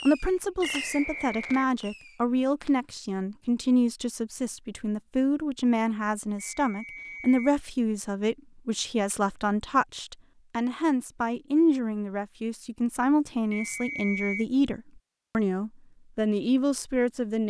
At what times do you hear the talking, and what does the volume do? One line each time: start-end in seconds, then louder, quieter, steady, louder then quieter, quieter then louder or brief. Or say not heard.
0.1-17.4 steady.